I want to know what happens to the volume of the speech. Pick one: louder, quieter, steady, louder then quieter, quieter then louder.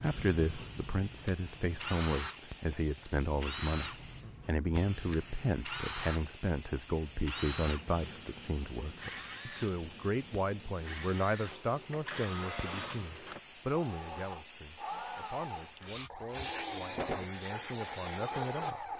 quieter.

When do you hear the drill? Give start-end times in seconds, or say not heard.
0.0-18.9.